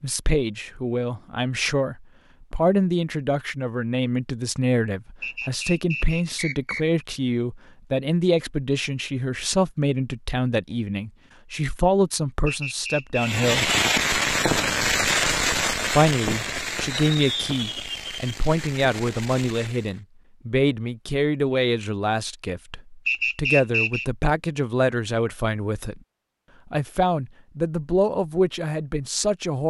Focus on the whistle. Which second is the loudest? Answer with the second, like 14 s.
24 s.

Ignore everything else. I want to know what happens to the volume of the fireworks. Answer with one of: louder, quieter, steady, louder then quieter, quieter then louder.
quieter.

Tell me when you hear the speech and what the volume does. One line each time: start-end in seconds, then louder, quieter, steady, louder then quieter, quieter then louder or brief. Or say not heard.
0.0-13.7 steady
15.9-26.0 steady
26.7-29.6 brief.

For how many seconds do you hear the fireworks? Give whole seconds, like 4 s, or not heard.
7 s.